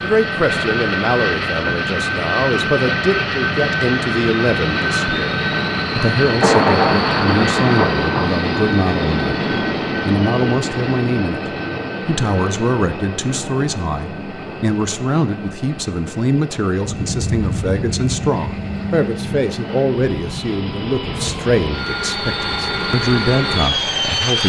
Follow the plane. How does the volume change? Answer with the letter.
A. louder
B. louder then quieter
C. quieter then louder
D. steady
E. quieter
C.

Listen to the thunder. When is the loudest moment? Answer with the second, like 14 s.
7 s.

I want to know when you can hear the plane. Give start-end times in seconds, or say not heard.
0.0-24.4.